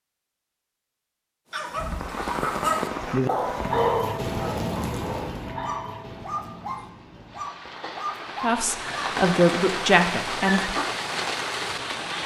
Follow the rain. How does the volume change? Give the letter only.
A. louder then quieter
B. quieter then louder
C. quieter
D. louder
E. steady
B.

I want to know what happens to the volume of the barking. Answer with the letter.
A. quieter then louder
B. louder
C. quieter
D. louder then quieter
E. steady
C.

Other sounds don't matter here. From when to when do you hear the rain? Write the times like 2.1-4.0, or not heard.
1.7-12.2.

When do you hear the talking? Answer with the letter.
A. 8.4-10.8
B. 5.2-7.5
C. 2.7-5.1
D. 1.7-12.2
A.